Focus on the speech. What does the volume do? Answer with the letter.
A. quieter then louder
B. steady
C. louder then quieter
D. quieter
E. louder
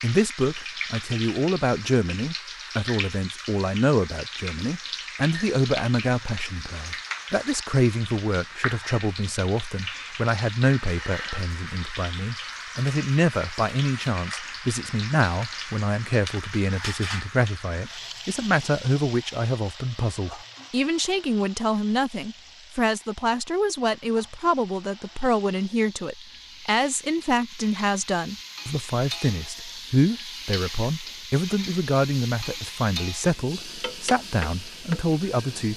B.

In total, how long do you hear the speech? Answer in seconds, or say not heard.
36 s.